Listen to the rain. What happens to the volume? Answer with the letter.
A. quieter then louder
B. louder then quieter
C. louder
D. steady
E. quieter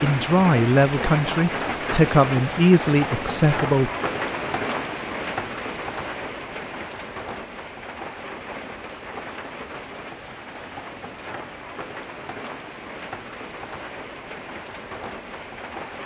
E.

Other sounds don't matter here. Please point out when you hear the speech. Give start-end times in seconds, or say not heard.
0.0-3.9.